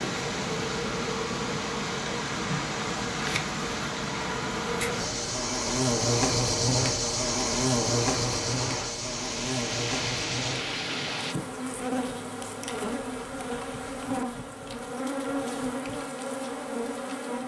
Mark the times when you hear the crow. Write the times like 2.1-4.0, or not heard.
not heard.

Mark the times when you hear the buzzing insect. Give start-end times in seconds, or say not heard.
0.0-17.4.